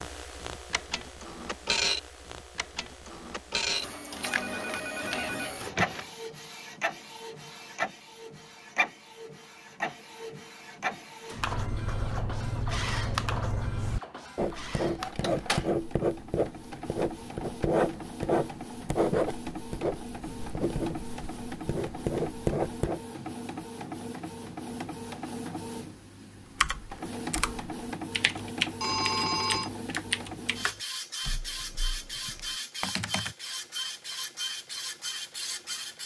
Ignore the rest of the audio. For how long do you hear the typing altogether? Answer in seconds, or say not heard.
7 s.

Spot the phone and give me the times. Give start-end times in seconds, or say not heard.
4.2-6.2, 28.8-29.7.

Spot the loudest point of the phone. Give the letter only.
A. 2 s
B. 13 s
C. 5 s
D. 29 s
D.